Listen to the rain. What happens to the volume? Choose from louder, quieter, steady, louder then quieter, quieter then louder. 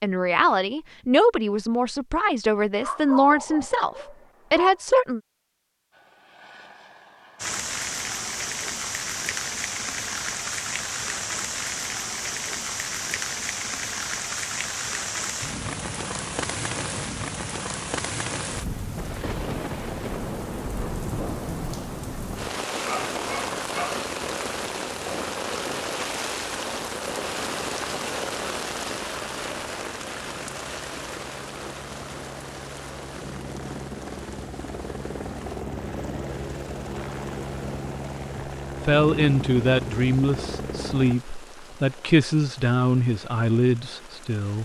quieter.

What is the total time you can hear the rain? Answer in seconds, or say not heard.
37 s.